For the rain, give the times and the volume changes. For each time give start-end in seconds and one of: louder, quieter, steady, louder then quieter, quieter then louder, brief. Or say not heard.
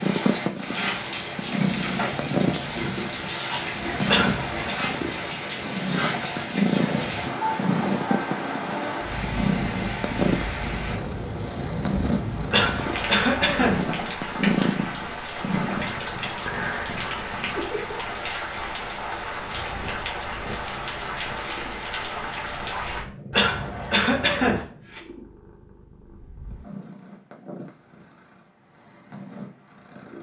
0.0-23.1 steady.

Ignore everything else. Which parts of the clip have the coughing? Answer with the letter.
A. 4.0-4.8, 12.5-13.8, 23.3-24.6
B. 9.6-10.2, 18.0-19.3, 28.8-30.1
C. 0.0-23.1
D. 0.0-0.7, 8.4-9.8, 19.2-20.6
A.